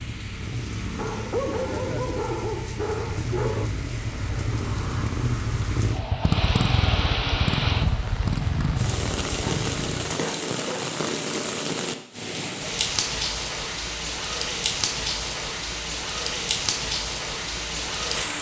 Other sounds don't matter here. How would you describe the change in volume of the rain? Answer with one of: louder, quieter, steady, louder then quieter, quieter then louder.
louder.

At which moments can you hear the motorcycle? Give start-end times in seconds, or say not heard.
0.0-10.2.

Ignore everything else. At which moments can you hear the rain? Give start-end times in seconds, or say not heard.
0.0-18.3.